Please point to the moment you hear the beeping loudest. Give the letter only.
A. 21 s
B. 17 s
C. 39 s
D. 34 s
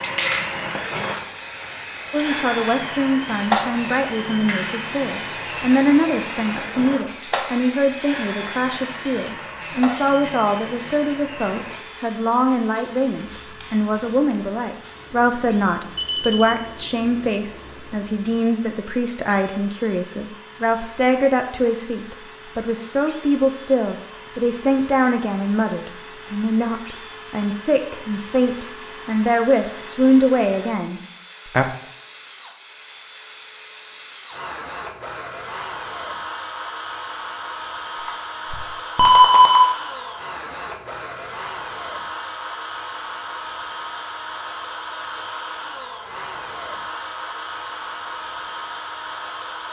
C.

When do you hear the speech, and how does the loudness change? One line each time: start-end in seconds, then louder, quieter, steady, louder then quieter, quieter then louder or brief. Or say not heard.
2.1-31.7 steady.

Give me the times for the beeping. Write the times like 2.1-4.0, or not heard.
15.9-16.6, 38.0-39.7.